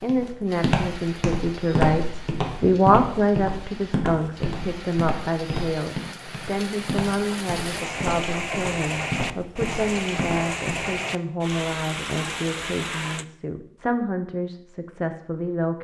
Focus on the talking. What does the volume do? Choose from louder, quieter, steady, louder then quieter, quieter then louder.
quieter.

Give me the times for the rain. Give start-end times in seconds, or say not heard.
0.0-13.2.